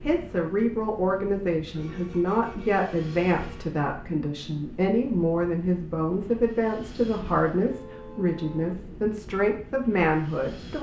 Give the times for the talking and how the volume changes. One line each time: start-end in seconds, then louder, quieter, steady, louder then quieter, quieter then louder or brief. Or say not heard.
0.0-10.7 steady.